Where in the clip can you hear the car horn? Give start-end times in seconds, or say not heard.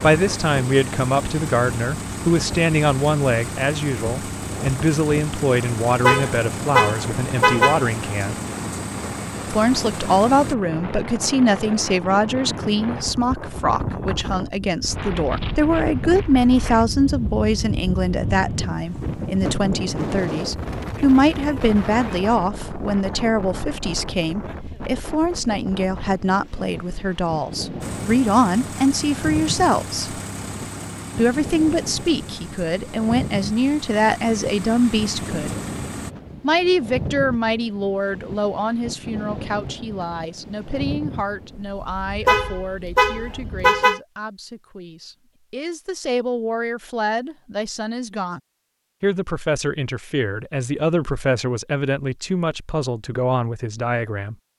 6.0-7.8, 42.2-44.0.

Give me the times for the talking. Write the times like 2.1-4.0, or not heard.
0.0-8.3, 9.5-30.2, 31.1-35.5, 36.4-48.4, 49.0-54.4.